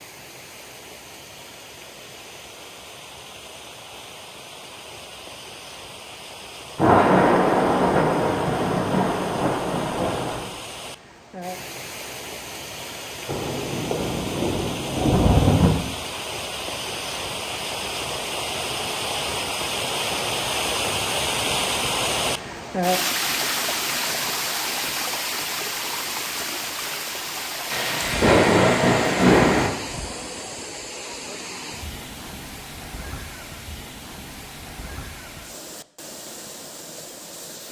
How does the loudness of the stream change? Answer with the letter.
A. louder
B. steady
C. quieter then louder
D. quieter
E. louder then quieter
E.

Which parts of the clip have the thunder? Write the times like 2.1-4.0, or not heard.
6.8-10.5, 13.2-15.7, 27.7-29.7.